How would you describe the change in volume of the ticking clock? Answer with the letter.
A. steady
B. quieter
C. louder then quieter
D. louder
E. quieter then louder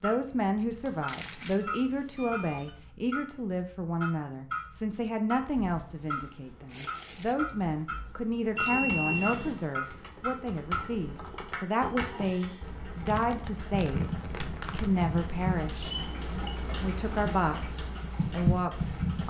D.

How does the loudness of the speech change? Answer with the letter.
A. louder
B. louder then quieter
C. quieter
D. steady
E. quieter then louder
D.